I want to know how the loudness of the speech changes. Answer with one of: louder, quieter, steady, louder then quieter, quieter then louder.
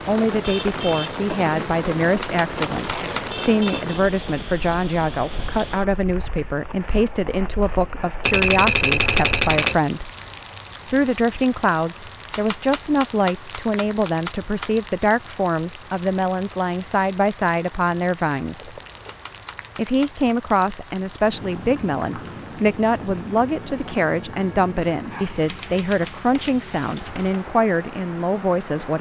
steady.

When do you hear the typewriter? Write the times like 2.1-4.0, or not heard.
2.2-3.7, 8.2-9.8, 12.3-14.7, 19.1-20.1, 25.4-27.4.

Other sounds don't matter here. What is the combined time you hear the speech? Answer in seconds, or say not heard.
27 s.